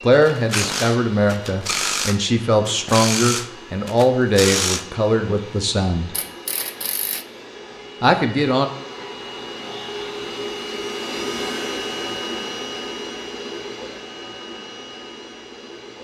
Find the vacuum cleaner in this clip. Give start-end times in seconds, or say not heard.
0.0-15.9.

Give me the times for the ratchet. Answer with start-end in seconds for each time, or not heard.
0.1-5.4, 6.1-7.2.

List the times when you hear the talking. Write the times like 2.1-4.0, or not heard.
0.0-6.1, 8.0-8.7.